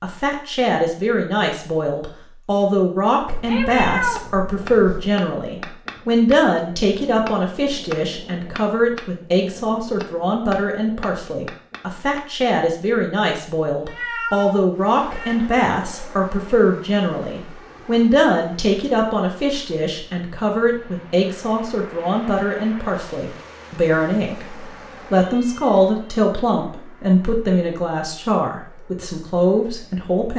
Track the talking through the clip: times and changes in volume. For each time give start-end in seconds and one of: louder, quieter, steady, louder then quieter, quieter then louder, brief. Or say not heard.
0.0-30.3 steady.